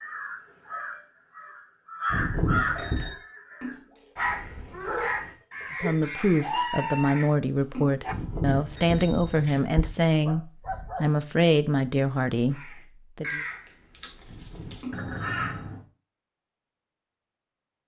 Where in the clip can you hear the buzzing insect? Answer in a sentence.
You can't hear the buzzing insect here.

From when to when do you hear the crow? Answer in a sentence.
The crow can be heard from 0.0 to 7.3 s and from 12.5 to 15.8 s.